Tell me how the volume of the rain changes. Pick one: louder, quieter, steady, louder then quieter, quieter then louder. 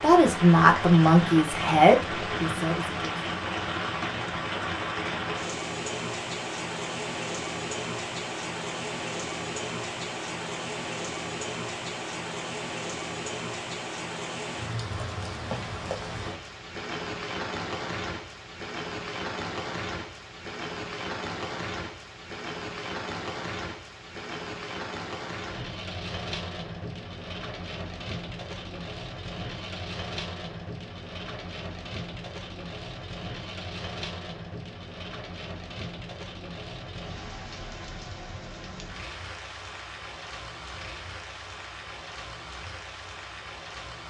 quieter.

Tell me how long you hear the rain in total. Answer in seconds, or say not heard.
44 s.